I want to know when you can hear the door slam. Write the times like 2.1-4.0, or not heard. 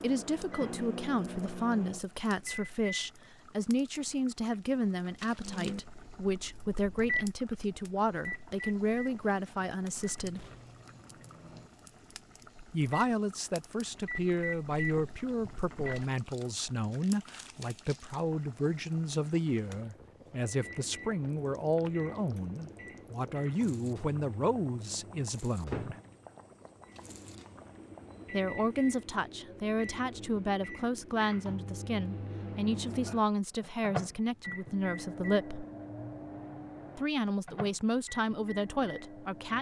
10.3-10.8.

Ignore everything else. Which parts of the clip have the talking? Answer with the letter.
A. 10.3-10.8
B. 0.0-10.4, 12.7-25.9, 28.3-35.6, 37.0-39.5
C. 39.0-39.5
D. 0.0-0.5
B.